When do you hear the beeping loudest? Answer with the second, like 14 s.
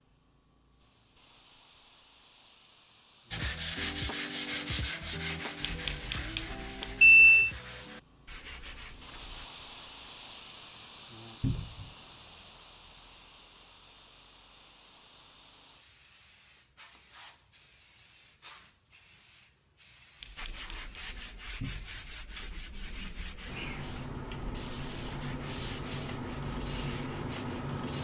7 s.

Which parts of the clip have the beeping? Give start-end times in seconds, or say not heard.
5.7-7.5, 20.2-20.8.